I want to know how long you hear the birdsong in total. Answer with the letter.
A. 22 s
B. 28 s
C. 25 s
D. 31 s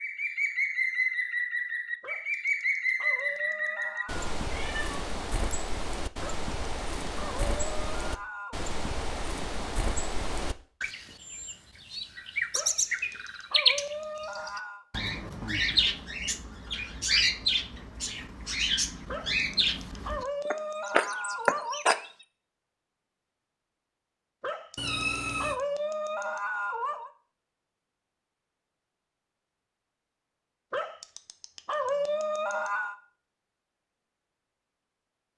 A.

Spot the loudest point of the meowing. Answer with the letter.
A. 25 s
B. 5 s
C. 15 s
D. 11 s
A.